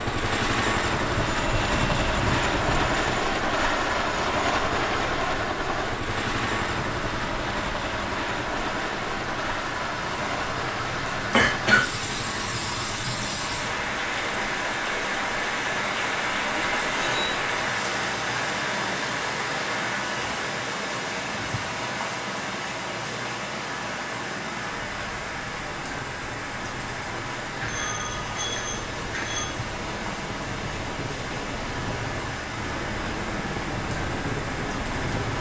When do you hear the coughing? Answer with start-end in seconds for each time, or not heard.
11.3-11.8.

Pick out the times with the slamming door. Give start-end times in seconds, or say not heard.
not heard.